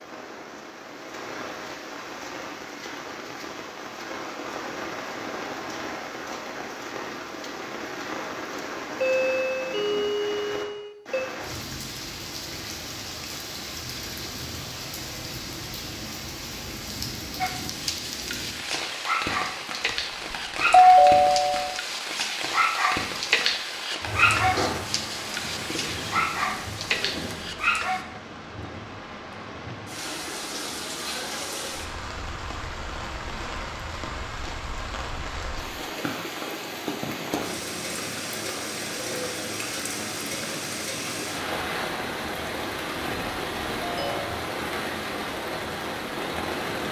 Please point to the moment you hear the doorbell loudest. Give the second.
21 s.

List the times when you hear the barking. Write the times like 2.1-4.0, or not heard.
17.4-28.1.